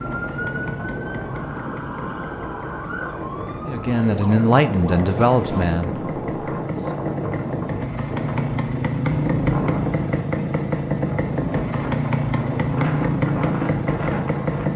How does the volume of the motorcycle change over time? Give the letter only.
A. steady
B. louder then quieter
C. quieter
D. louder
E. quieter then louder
D.